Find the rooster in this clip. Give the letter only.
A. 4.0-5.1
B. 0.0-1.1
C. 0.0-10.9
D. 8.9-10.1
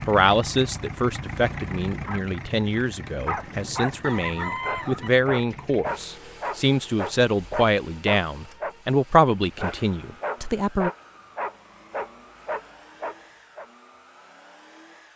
A.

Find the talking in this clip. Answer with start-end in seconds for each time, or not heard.
0.0-10.9.